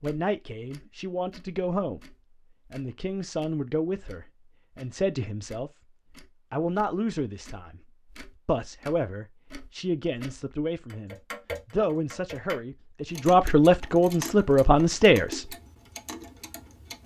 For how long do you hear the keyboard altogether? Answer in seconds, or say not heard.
not heard.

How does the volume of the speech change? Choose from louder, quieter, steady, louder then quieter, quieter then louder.
louder.